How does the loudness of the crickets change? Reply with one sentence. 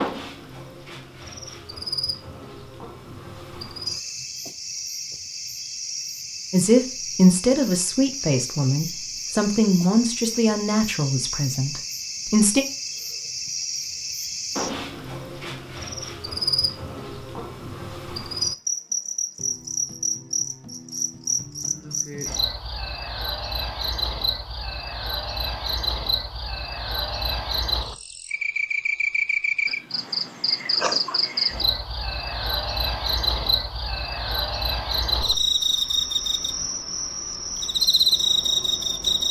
The loudness of the crickets goes up.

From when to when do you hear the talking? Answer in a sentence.
The talking can be heard from 6.5 to 12.7 s.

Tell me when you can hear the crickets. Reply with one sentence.
You can hear the crickets from 0.0 to 39.2 s.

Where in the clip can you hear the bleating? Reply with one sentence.
The bleating can't be heard in this clip.